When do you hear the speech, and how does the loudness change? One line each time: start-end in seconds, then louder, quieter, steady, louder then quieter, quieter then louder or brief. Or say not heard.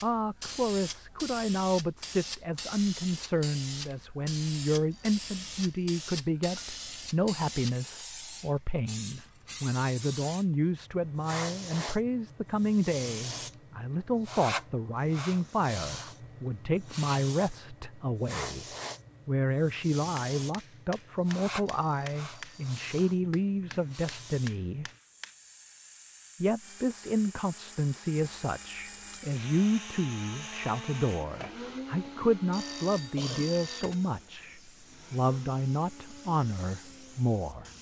0.0-18.6 steady
19.2-24.9 steady
26.4-37.7 steady.